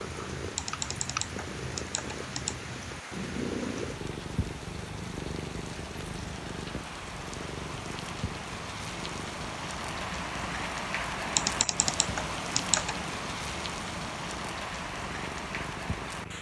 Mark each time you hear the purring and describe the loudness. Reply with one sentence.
You can hear the purring from 0.0 to 16.3 s, getting quieter.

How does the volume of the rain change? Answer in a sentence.
The volume of the rain goes up.